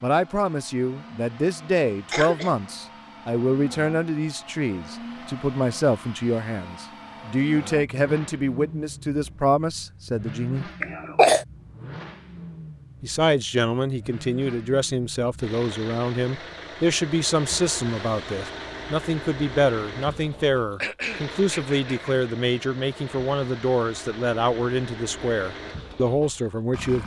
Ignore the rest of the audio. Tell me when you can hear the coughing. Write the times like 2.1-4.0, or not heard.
2.1-2.7, 10.8-11.4, 20.8-22.1.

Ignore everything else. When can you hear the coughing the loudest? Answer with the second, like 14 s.
11 s.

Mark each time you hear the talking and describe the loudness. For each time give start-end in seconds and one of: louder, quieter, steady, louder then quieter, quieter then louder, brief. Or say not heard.
0.0-10.7 steady
13.0-27.0 steady.